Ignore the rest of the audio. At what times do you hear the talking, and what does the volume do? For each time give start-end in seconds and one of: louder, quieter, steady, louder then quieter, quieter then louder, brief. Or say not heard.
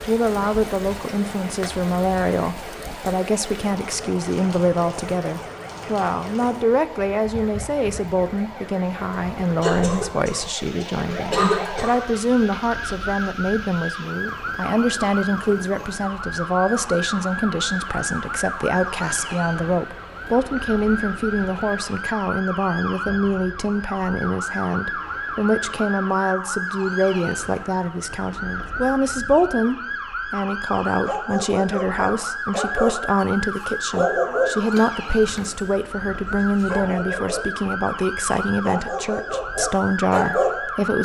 0.1-41.0 steady.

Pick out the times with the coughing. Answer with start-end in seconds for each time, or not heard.
9.6-11.9.